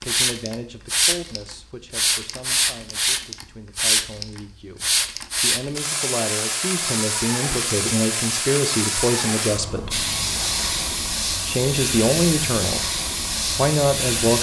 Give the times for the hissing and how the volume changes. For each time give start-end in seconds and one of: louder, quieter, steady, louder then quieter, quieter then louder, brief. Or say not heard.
0.0-14.3 steady.